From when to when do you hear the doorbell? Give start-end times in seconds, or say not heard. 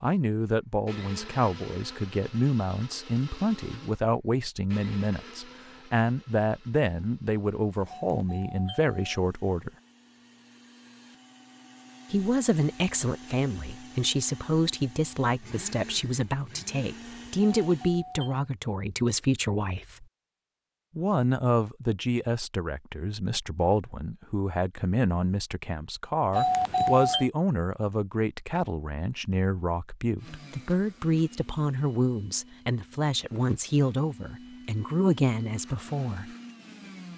8.1-9.3, 17.6-18.4, 26.3-27.3.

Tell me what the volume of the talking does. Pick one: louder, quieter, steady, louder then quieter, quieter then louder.
steady.